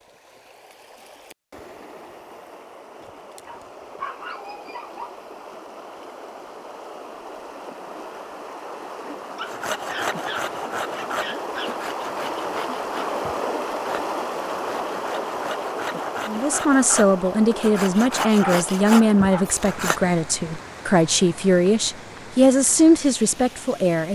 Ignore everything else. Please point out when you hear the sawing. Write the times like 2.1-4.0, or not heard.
9.4-20.1.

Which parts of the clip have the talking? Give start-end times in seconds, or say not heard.
16.2-24.1.